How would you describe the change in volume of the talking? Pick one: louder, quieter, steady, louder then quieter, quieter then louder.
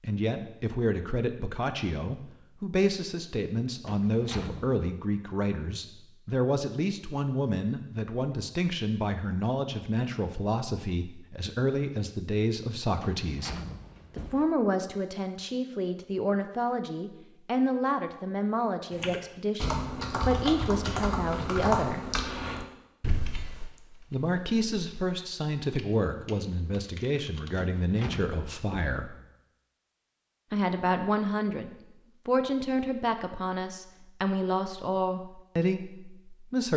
steady.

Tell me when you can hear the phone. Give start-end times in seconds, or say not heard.
not heard.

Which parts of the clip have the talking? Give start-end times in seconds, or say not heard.
0.0-13.6, 14.2-22.0, 24.1-29.1, 30.5-36.7.